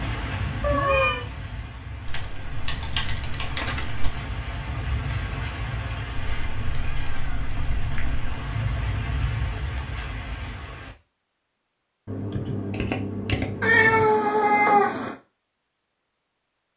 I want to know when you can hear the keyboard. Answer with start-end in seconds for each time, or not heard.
2.0-4.1, 12.1-14.1.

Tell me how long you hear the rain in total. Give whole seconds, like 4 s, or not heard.
11 s.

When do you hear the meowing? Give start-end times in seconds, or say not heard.
0.6-1.2, 6.2-8.4, 13.6-15.2.